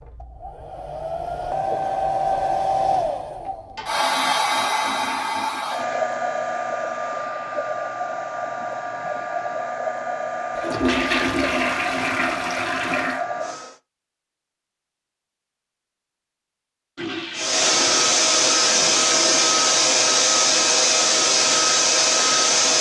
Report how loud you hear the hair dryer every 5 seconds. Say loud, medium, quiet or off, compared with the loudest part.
medium, medium, medium, loud, loud.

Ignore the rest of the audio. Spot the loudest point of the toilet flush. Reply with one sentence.
The volume of the toilet flush peaks at 11 seconds.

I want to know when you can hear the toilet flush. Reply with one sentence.
The toilet flush can be heard from 3.8 to 6.0 s, from 10.6 to 13.2 s and from 16.9 to 19.6 s.